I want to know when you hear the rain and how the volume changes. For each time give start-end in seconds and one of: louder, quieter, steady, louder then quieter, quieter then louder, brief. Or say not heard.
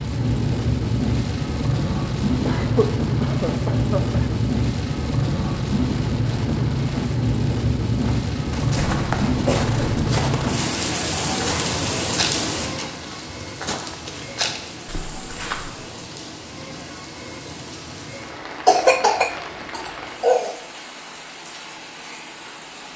0.0-22.9 quieter.